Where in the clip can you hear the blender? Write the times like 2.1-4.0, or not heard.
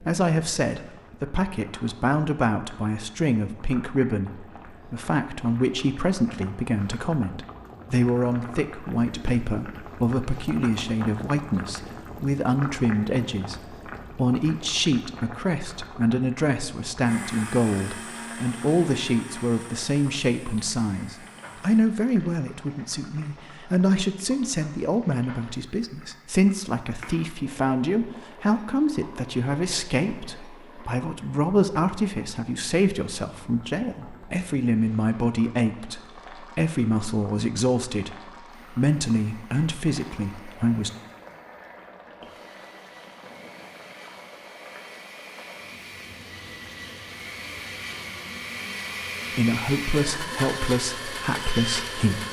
17.0-21.8, 38.5-52.2.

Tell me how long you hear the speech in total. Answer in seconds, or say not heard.
44 s.